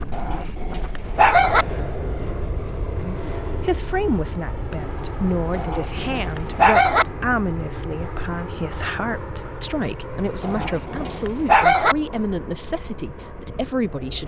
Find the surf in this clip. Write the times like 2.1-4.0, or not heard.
not heard.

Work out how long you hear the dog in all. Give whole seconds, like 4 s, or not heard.
5 s.